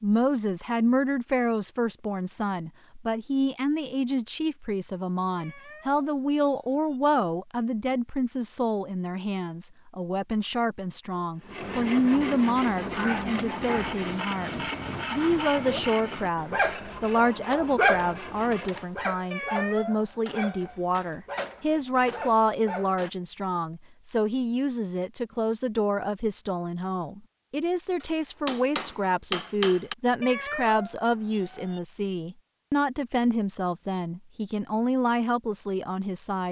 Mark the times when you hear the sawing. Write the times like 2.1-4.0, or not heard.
11.3-18.9.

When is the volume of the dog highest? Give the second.
18 s.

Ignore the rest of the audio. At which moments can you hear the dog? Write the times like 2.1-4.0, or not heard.
12.8-23.1.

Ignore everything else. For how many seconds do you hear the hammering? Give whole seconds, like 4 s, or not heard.
2 s.